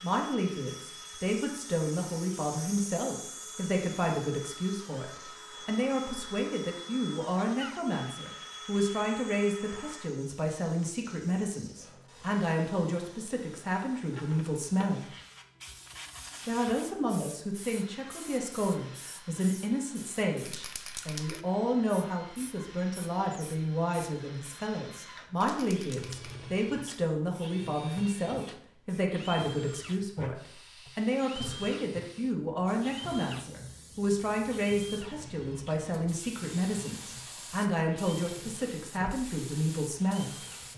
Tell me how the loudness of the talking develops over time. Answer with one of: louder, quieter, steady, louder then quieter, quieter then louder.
steady.